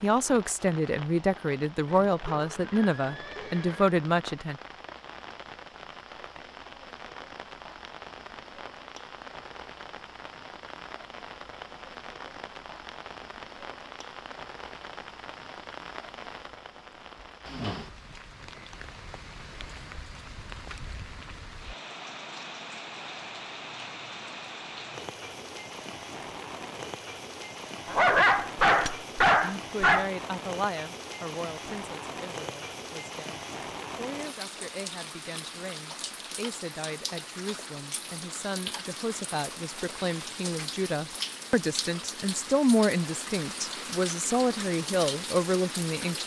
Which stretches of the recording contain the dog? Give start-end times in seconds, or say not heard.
27.9-30.1.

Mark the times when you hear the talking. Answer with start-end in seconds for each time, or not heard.
0.0-4.6, 29.4-46.2.